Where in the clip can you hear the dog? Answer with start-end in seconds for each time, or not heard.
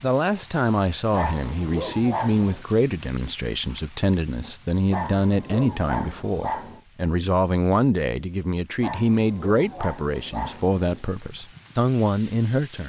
1.1-2.6, 4.9-6.8, 8.8-11.1.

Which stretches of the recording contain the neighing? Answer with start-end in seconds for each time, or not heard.
not heard.